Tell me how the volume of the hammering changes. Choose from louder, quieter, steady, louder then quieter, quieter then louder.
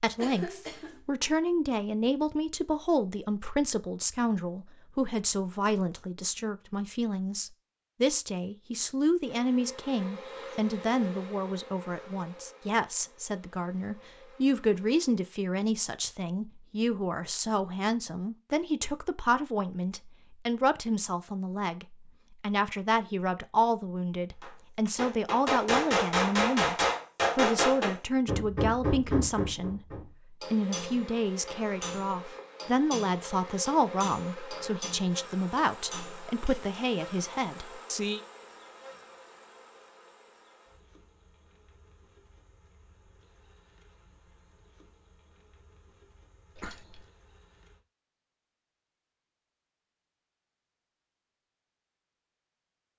quieter.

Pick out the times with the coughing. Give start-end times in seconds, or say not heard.
0.1-1.0, 46.5-47.0.